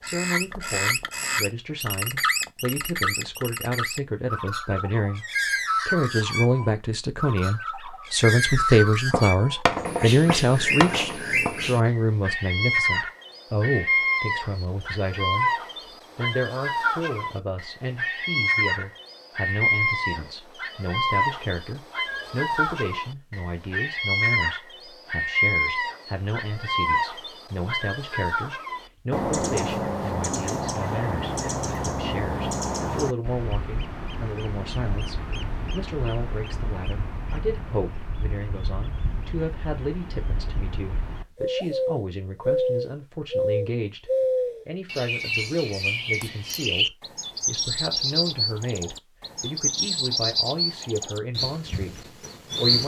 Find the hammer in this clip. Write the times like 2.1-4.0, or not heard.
9.1-11.6.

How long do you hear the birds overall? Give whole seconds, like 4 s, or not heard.
53 s.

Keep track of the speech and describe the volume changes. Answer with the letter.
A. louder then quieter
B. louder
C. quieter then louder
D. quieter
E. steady
D.